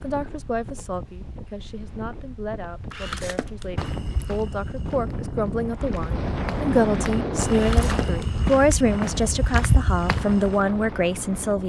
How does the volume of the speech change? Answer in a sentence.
The volume of the speech goes up.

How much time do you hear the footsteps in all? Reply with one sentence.
You can hear the footsteps for 7 seconds altogether.